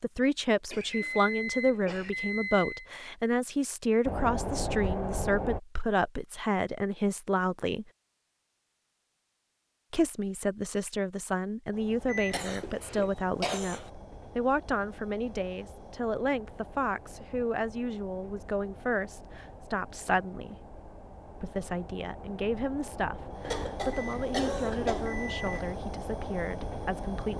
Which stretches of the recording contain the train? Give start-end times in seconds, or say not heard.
4.0-5.6, 11.7-27.3.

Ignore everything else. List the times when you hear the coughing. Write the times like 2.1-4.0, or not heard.
0.7-2.1, 12.3-13.9, 23.4-25.7.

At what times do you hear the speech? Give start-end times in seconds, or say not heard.
0.0-7.8, 9.9-20.6, 21.4-27.3.